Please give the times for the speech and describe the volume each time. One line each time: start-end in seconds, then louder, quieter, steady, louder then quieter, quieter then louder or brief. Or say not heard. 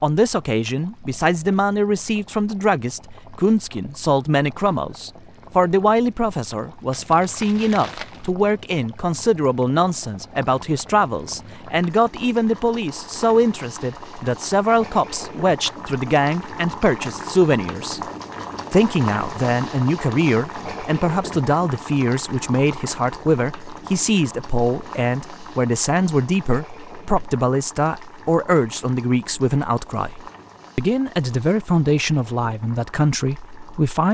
0.0-18.0 steady
18.7-34.0 steady.